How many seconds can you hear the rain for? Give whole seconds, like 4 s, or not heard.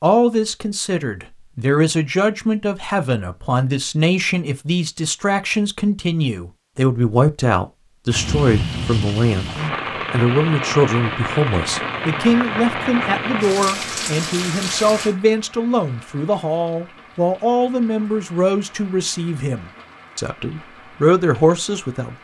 14 s.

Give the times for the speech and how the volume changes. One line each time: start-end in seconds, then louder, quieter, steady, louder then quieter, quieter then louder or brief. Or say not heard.
0.0-22.1 steady.